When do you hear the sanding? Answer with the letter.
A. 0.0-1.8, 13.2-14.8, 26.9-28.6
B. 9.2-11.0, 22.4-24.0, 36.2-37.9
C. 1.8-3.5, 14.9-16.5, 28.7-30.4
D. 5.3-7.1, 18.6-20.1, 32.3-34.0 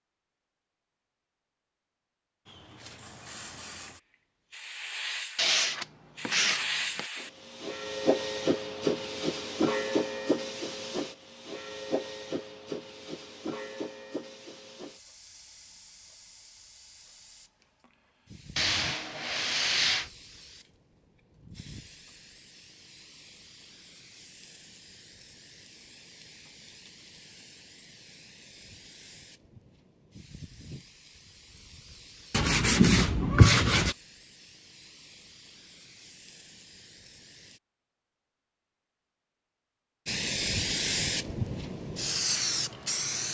D.